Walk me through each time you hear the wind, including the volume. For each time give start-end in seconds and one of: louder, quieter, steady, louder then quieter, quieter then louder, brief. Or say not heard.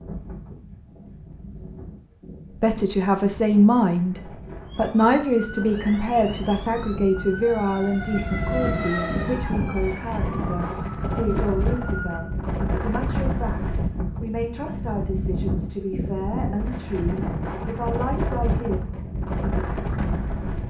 0.0-20.6 louder.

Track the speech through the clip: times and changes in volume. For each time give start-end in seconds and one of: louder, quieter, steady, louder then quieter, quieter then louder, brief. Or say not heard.
2.6-18.8 quieter.